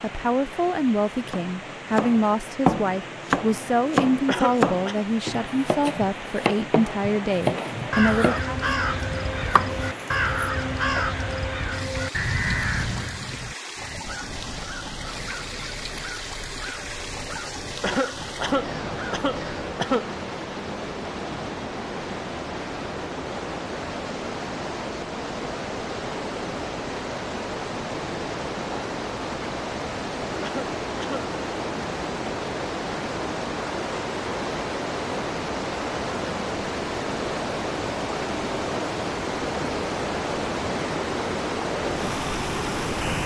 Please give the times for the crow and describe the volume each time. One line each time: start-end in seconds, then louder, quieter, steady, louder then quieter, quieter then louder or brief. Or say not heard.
7.9-19.8 quieter.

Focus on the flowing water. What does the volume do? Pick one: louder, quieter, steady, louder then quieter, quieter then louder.
louder.